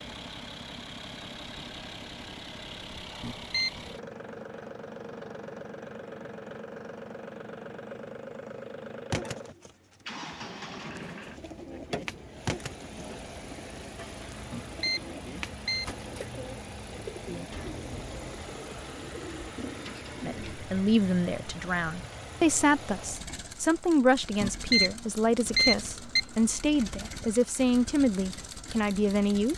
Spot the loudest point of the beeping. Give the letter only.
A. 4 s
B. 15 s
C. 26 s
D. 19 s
C.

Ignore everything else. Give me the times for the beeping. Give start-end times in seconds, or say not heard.
3.2-3.9, 14.5-15.8, 24.4-26.4.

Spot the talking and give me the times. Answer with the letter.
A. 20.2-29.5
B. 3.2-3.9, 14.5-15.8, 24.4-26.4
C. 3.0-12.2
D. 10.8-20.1
A.